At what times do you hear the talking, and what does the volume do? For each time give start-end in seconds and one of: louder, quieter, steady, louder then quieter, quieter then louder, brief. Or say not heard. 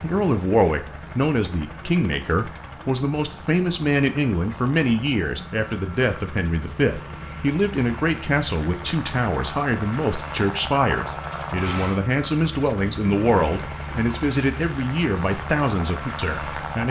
0.0-16.8 steady.